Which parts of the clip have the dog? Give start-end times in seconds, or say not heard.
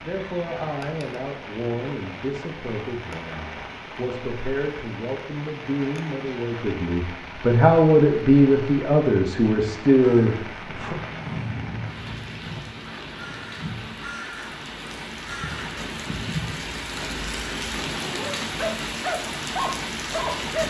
17.9-20.6.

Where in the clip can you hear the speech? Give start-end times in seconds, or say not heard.
0.0-10.9.